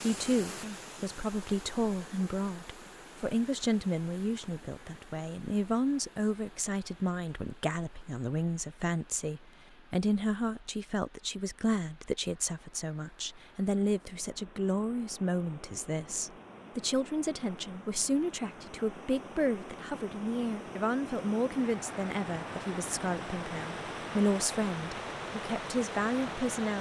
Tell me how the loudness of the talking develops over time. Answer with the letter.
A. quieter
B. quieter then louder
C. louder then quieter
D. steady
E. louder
D.